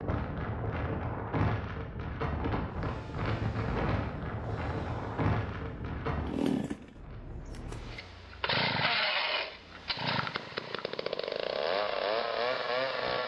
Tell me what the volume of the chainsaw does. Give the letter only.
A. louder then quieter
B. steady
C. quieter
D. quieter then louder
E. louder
E.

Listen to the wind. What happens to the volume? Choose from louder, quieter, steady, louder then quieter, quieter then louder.
quieter.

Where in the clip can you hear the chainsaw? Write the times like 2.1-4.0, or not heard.
2.6-13.2.